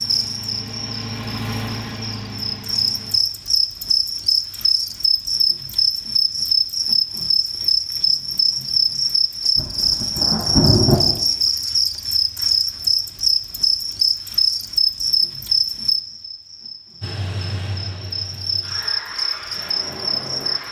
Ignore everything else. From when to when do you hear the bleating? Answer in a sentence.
The bleating can't be heard in this clip.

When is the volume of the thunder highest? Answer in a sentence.
The volume of the thunder peaks at 11 seconds.